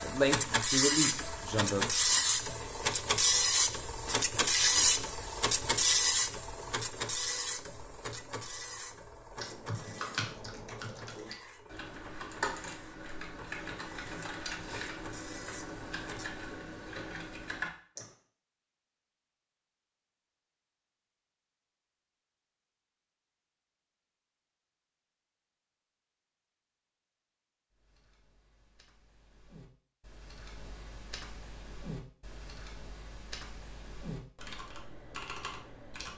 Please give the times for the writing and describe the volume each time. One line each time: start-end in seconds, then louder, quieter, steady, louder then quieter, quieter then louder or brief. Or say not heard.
not heard.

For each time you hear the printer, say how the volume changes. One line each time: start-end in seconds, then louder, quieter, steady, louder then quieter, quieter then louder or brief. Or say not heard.
0.0-16.4 quieter.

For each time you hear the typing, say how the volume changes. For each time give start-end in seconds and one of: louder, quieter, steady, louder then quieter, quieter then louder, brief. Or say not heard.
9.3-18.1 steady
27.7-36.1 louder.